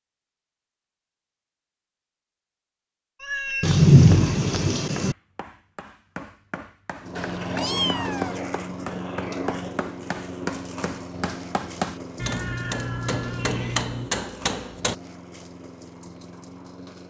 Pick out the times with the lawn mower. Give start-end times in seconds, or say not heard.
7.0-17.0.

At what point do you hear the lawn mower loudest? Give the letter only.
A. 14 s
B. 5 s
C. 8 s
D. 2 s
C.